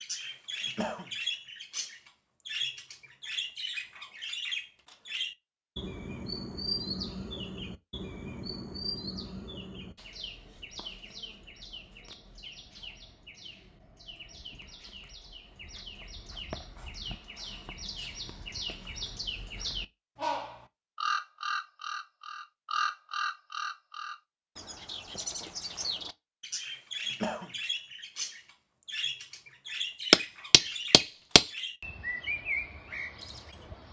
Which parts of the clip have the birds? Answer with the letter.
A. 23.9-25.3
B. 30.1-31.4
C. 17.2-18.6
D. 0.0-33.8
D.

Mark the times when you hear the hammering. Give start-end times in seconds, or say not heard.
30.1-31.4.